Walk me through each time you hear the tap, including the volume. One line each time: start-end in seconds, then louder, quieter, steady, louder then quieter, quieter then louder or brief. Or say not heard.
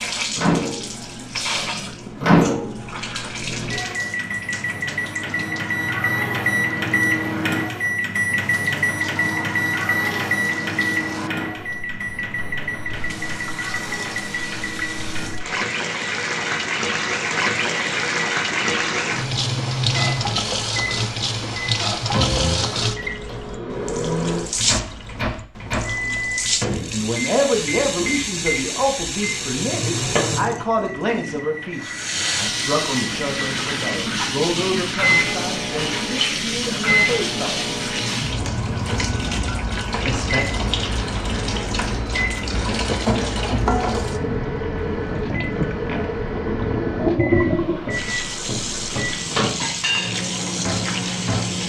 0.0-51.6 louder.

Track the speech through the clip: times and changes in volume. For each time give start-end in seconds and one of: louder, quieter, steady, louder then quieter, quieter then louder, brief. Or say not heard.
26.9-37.6 quieter
40.0-40.5 brief.